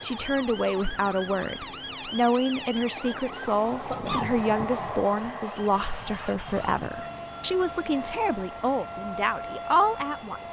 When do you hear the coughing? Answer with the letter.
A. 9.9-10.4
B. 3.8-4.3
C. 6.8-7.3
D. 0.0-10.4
B.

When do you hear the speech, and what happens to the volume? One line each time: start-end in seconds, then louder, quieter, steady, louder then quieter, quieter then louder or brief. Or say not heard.
0.0-10.4 steady.